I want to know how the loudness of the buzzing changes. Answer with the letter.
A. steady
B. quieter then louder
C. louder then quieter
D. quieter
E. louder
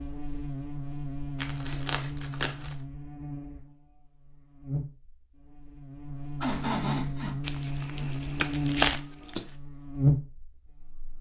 B.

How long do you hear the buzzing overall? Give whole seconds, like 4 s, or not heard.
11 s.